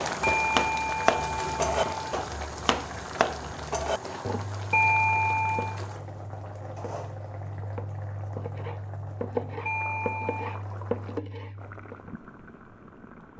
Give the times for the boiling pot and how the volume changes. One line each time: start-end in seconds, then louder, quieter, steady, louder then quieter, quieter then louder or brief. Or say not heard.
0.0-13.3 quieter.